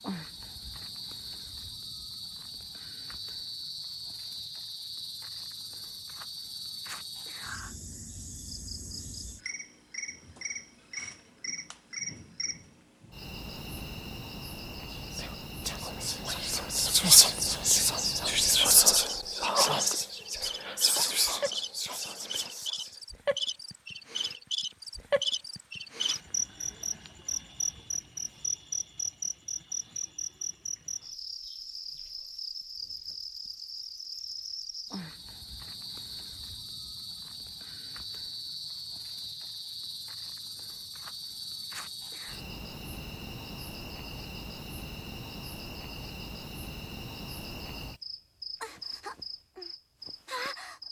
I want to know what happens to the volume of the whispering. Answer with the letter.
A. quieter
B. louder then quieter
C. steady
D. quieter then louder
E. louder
B.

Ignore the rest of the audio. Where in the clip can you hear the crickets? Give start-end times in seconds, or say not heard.
0.0-50.8.